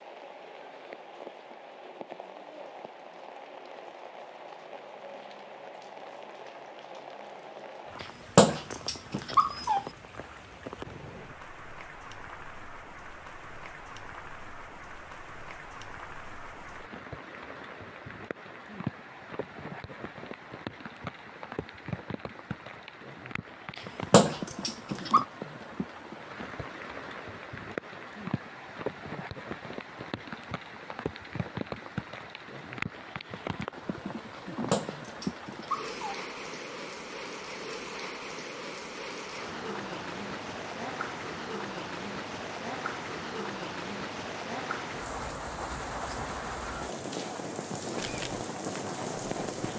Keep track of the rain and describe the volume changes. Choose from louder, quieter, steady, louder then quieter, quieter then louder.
louder.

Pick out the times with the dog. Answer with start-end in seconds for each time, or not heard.
8.0-9.8, 23.8-25.2, 34.7-36.1.